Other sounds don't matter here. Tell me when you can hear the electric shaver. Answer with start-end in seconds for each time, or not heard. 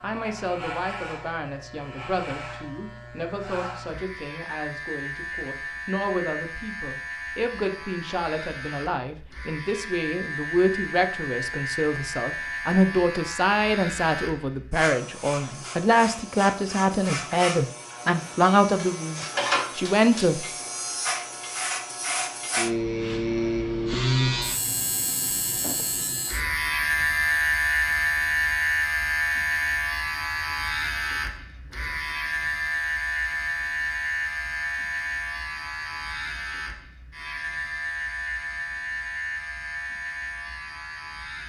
0.0-41.4.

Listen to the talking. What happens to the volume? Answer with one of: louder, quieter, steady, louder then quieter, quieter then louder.
louder.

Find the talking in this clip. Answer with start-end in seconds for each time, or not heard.
0.0-20.4.